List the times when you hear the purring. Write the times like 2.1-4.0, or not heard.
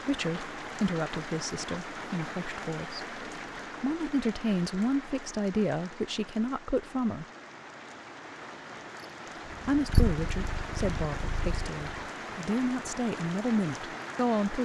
9.5-12.1.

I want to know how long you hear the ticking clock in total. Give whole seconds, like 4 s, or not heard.
not heard.